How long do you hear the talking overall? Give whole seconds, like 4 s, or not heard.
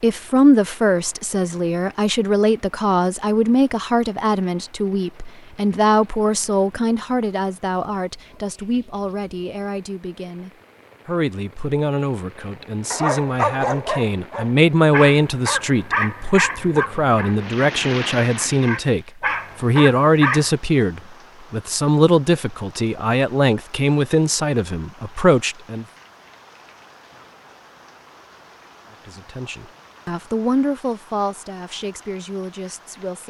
30 s.